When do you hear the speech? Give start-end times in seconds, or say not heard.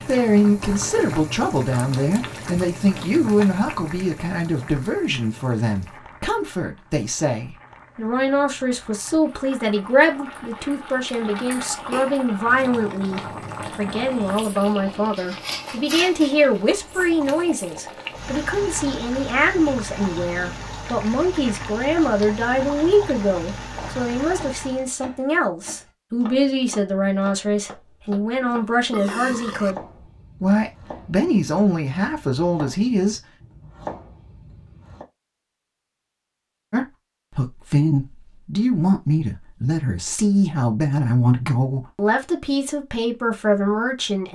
0.1-29.8, 30.4-33.2, 36.7-44.3.